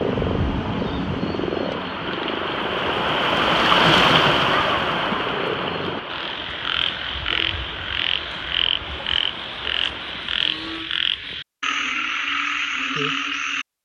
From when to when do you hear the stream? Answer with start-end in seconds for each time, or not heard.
0.0-10.5.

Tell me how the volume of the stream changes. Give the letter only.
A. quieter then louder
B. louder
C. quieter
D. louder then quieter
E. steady
D.